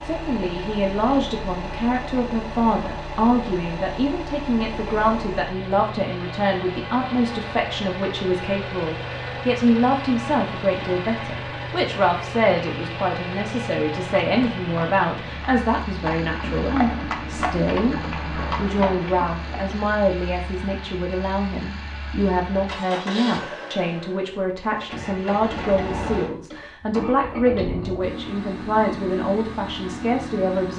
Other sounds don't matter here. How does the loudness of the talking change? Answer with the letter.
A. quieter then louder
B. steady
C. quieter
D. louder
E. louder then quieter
B.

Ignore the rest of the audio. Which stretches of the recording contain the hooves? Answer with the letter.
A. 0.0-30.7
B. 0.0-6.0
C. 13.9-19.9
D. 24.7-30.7
C.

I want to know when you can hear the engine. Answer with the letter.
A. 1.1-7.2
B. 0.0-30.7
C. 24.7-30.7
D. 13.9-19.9
B.